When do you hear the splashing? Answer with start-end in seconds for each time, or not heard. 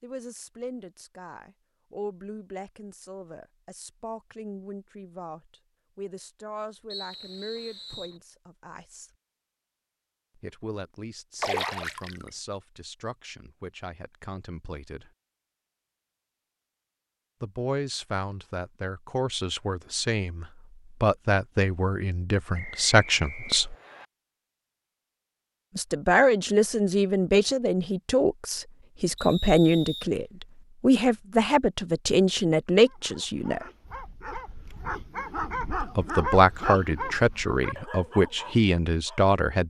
11.4-12.3.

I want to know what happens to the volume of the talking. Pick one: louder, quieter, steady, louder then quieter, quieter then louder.
louder.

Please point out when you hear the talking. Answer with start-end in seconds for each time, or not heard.
0.0-9.1, 10.3-15.1, 17.4-23.8, 25.8-33.6, 35.8-39.6.